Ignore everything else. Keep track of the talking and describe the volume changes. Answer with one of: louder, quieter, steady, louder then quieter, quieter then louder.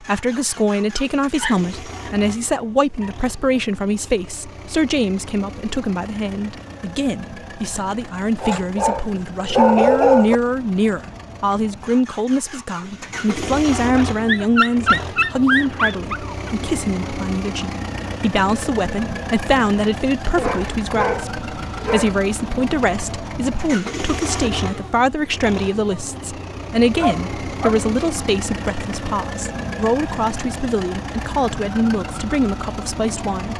steady.